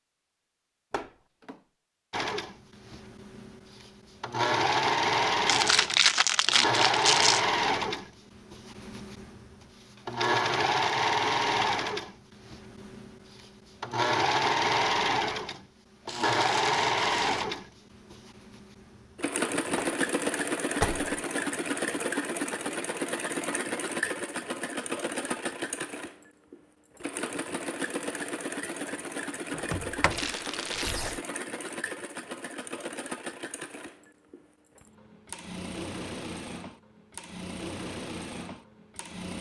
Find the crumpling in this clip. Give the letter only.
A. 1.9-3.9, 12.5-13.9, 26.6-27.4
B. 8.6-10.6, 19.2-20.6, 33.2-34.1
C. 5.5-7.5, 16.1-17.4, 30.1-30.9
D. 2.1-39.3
C.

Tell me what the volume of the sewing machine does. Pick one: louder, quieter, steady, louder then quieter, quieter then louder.
quieter.